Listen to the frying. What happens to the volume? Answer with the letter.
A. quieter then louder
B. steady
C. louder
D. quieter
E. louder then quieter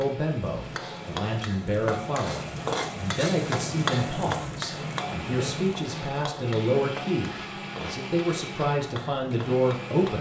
E.